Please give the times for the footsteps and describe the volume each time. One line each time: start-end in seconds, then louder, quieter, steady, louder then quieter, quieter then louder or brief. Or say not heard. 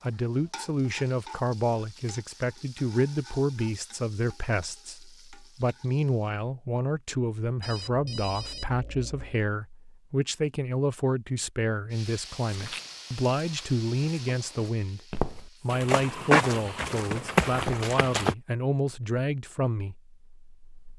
12.1-18.4 quieter then louder.